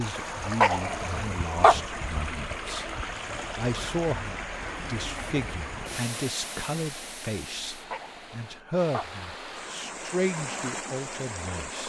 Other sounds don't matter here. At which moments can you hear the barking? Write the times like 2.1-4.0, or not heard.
0.6-1.8, 7.9-9.1.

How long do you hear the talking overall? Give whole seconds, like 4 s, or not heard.
12 s.